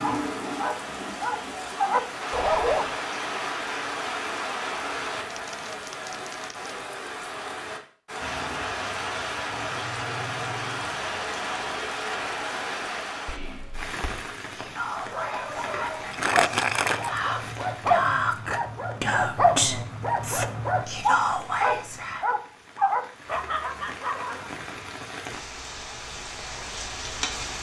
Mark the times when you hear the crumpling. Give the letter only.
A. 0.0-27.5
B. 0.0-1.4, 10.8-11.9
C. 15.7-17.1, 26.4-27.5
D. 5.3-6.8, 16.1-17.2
D.